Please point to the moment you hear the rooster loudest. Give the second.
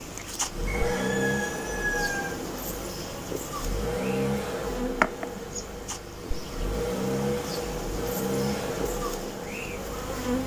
2 s.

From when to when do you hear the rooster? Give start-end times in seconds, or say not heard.
0.7-2.3.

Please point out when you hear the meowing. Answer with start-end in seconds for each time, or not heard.
not heard.